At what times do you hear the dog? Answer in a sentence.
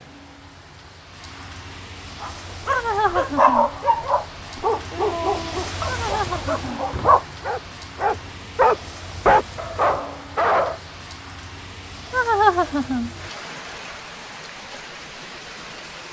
The dog can be heard from 2.2 to 10.8 s.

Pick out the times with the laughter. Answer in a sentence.
You can hear the laughter from 2.7 to 3.7 s, from 5.8 to 6.8 s and from 12.1 to 13.1 s.